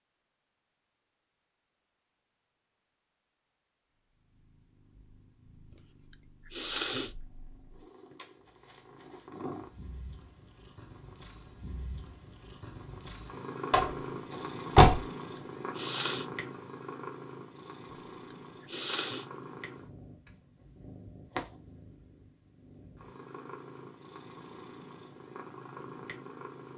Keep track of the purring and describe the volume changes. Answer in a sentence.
The loudness of the purring goes up, then down.